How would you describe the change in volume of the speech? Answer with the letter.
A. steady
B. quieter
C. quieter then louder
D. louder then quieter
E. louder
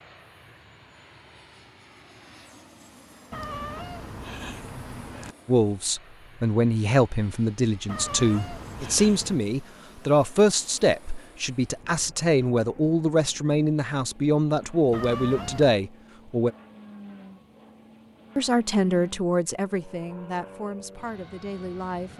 B.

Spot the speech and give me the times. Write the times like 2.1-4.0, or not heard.
5.5-16.5, 18.4-22.1.